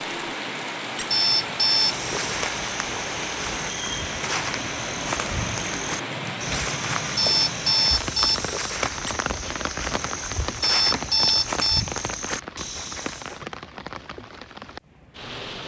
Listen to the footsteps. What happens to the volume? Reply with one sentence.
The loudness of the footsteps stays about the same.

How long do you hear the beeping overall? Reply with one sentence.
The beeping can be heard for 3 seconds in total.